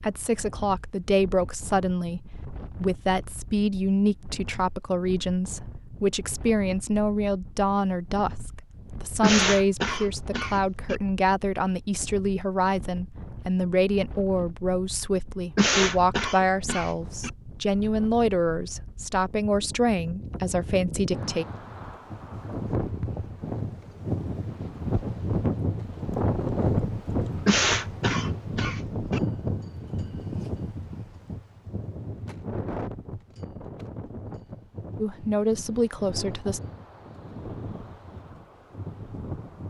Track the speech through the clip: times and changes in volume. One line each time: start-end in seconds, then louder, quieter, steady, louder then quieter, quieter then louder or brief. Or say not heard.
0.0-21.4 steady
35.0-36.6 brief.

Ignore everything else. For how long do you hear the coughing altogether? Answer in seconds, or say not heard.
6 s.